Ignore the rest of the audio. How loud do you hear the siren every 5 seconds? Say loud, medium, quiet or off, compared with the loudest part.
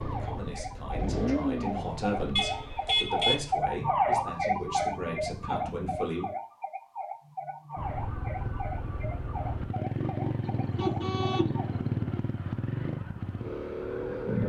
loud, medium, medium.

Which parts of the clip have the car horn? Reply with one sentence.
The car horn can be heard from 2.4 to 3.5 s and from 10.4 to 12.2 s.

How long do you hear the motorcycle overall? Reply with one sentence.
The motorcycle can be heard for 13 seconds in total.